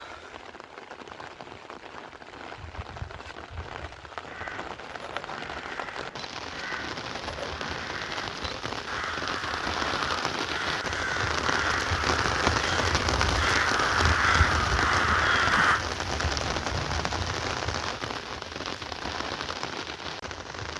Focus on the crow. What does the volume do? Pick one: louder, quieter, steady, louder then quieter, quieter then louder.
louder.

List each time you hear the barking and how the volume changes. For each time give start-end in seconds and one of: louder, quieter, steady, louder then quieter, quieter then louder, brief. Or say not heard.
not heard.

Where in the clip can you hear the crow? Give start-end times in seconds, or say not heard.
4.2-15.8.